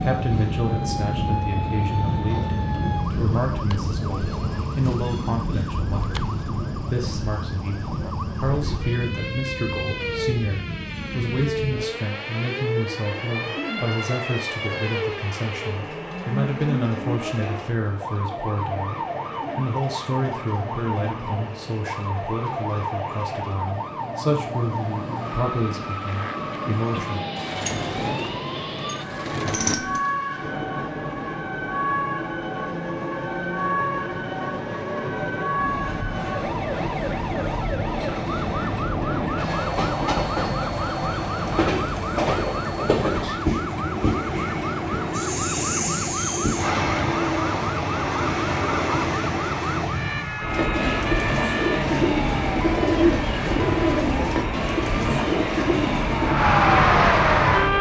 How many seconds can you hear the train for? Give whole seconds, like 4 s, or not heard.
58 s.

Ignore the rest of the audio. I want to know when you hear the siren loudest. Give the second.
57 s.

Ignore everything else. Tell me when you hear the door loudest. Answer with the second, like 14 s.
30 s.